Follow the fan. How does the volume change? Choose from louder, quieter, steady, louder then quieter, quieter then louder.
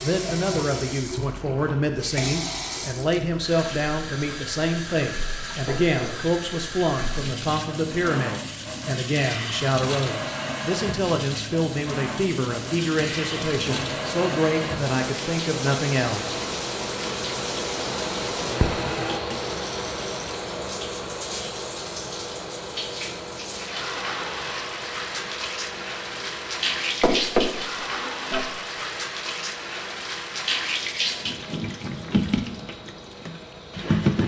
quieter.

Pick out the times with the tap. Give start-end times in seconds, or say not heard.
0.0-34.2.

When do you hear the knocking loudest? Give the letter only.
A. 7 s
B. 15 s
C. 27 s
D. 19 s
C.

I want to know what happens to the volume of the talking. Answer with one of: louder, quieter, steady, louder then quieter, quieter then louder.
steady.